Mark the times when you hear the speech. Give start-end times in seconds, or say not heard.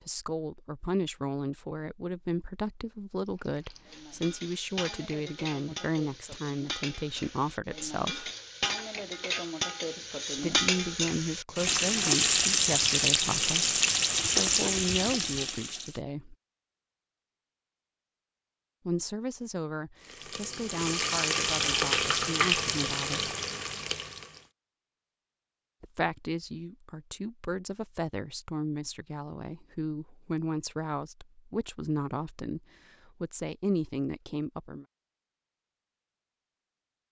0.1-8.3, 10.4-16.4, 18.9-23.4, 25.8-34.9.